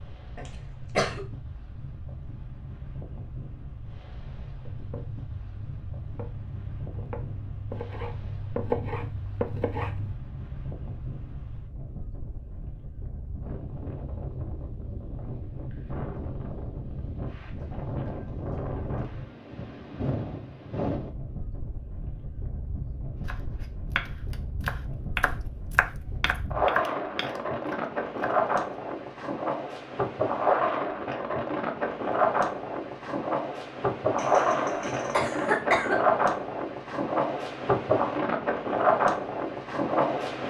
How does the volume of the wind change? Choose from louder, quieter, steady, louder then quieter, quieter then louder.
louder.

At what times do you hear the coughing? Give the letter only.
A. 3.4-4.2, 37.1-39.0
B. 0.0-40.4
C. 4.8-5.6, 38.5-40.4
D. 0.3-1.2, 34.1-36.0
D.